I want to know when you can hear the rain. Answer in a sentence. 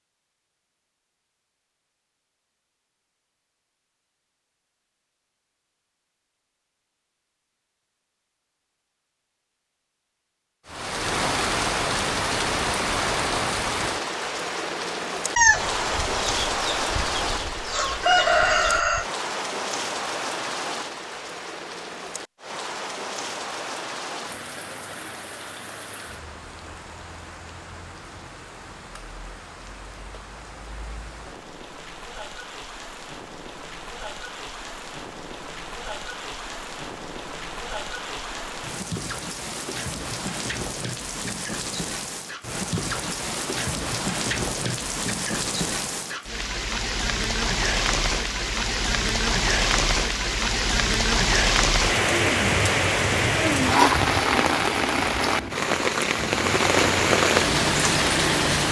The rain can be heard from 10.7 to 58.6 s.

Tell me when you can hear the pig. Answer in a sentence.
The pig can't be heard in this clip.